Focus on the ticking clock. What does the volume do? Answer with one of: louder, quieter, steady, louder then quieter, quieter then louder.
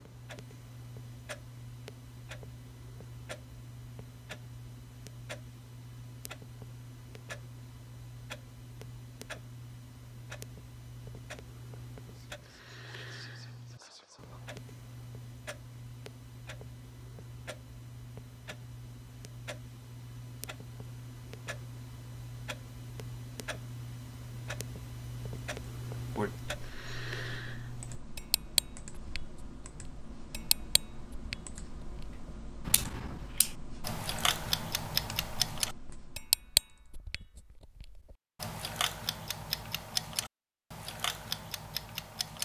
louder.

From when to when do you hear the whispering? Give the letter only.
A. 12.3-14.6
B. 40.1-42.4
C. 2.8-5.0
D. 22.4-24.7
A.